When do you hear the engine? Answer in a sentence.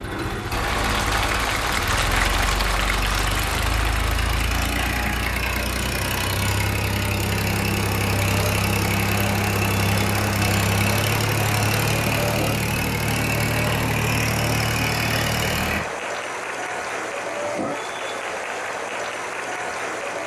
You can hear the engine from 0.0 to 15.8 s.